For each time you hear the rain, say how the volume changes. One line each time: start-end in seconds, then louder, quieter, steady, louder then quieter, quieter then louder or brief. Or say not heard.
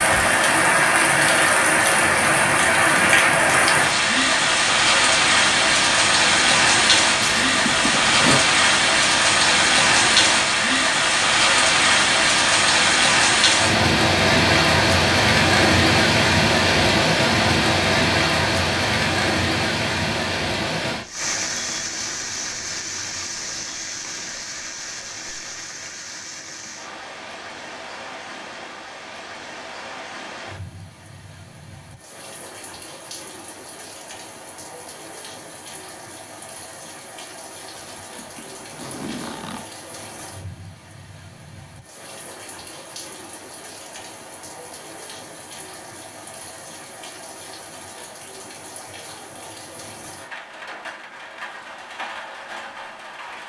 0.0-53.4 quieter.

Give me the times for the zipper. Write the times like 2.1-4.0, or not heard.
7.2-8.4, 37.7-39.7.